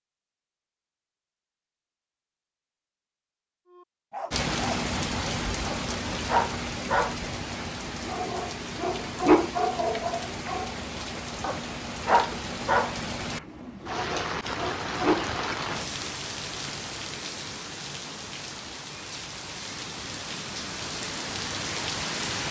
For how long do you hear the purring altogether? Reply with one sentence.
The purring can't be heard in this clip.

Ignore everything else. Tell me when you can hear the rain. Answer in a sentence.
The rain can be heard from 4.3 to 22.4 s.